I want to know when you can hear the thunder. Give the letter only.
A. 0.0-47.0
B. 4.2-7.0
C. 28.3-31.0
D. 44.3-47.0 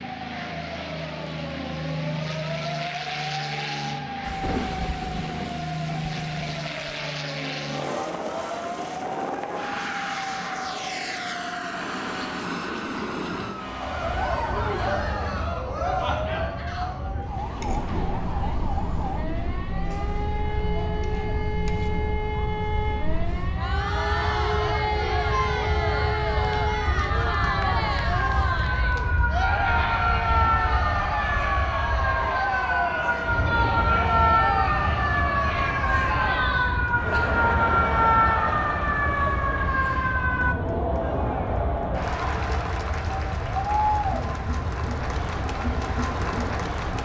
B.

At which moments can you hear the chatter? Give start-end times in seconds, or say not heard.
13.8-47.0.